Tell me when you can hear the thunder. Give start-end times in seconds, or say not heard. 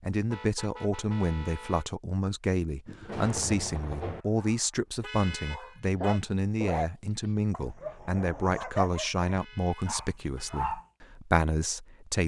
2.9-4.2.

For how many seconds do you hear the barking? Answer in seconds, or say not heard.
6 s.